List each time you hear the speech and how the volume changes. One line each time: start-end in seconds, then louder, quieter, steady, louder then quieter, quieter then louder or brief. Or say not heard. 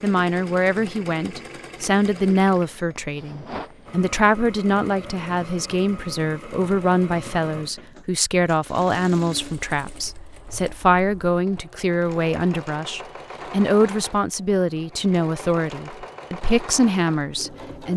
0.0-17.9 steady.